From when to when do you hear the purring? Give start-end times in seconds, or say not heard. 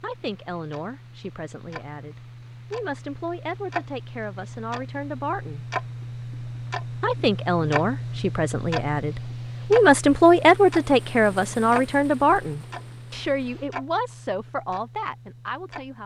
not heard.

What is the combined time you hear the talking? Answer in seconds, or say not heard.
15 s.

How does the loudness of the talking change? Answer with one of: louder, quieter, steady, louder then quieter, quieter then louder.
louder then quieter.